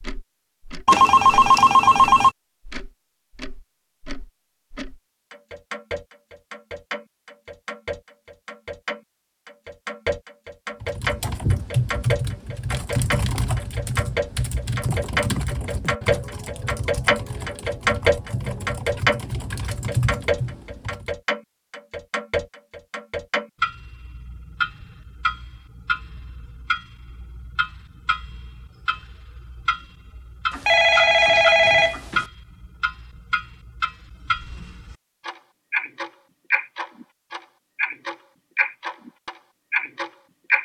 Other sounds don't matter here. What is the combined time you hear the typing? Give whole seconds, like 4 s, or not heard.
10 s.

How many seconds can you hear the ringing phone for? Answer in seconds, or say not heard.
3 s.